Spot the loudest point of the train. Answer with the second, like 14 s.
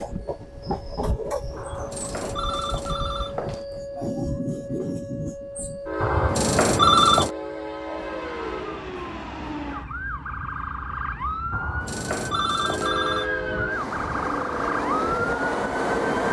16 s.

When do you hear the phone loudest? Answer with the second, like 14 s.
7 s.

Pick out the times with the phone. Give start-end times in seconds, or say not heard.
1.6-3.6, 6.0-7.3, 11.5-13.3.